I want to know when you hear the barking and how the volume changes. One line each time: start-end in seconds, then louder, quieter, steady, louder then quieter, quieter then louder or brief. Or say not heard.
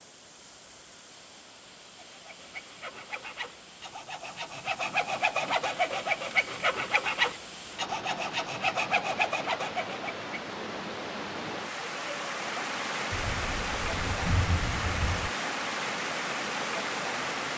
not heard.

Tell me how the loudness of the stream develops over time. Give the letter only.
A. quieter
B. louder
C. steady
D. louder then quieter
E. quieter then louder
B.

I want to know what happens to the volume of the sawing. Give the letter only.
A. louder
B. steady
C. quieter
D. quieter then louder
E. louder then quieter
A.